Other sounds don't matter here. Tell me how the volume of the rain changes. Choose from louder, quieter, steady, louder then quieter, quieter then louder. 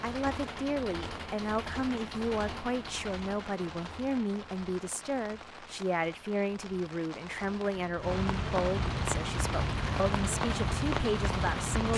louder.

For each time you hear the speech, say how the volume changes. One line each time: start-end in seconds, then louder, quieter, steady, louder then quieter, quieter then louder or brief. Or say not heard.
0.0-11.9 steady.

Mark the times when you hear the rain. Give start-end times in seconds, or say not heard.
0.0-11.9.